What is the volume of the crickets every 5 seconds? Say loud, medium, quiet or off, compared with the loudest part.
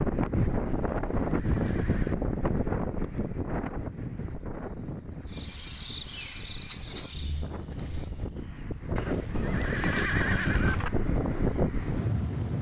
medium, loud, quiet.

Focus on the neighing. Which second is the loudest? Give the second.
10 s.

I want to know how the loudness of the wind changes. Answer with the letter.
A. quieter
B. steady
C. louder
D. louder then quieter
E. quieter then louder
E.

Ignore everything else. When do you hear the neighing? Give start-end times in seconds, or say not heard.
0.7-2.1, 8.9-10.9.